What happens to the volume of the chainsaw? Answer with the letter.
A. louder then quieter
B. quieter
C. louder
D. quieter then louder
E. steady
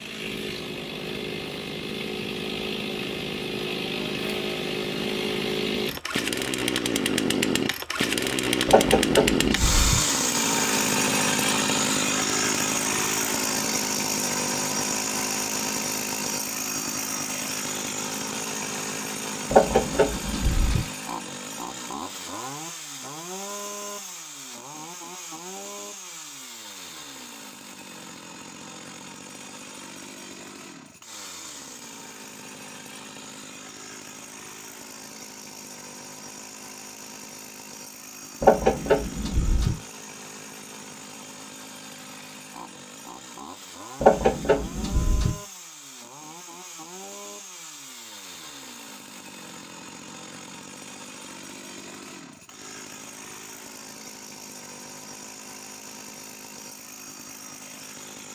B.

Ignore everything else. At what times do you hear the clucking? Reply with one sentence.
The clucking can be heard from 8.7 to 10.0 s, from 19.5 to 20.9 s, from 38.4 to 39.8 s and from 44.0 to 45.4 s.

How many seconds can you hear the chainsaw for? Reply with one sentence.
The chainsaw can be heard for 58 seconds in total.